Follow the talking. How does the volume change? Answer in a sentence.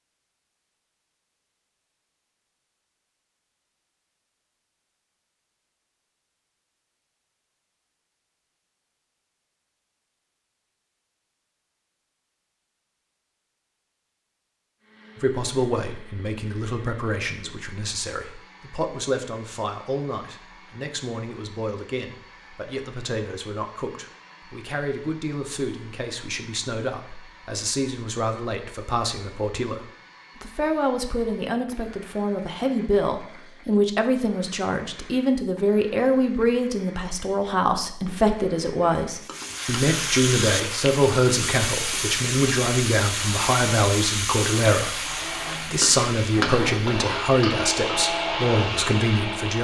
The volume of the talking goes up.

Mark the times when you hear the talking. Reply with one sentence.
The talking can be heard from 15.2 to 49.6 s.